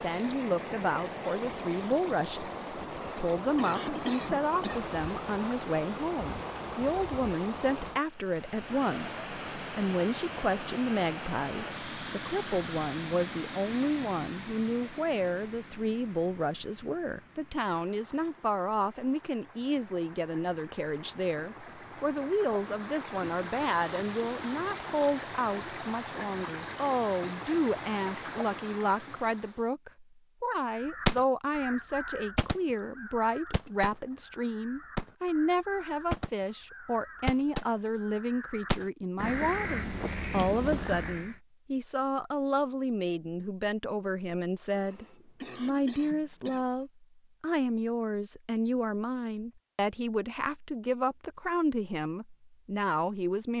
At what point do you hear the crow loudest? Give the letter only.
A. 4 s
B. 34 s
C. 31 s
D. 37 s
C.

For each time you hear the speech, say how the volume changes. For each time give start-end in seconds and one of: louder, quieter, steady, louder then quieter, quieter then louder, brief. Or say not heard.
0.0-53.5 steady.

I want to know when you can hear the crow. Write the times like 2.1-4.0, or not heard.
30.8-41.3.